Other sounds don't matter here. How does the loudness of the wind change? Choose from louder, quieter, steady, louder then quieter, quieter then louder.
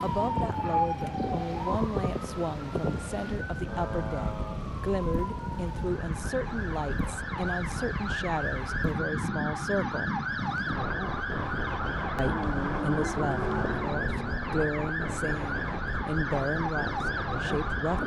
steady.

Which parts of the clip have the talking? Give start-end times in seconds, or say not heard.
0.0-10.2, 12.2-18.0.